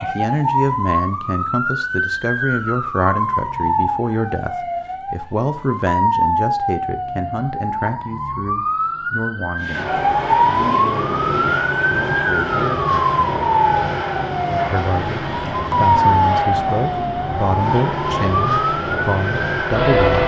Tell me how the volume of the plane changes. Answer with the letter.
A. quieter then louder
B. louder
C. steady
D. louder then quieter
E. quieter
C.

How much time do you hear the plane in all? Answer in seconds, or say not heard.
11 s.